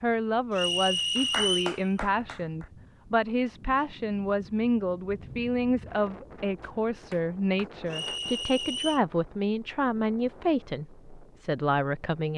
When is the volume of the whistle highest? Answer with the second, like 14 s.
1 s.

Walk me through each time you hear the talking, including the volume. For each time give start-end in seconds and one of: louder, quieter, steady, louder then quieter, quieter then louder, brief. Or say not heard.
0.0-12.3 steady.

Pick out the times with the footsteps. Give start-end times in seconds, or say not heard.
not heard.